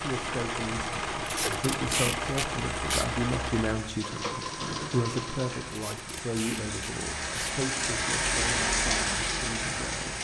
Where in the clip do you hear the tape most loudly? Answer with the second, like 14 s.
2 s.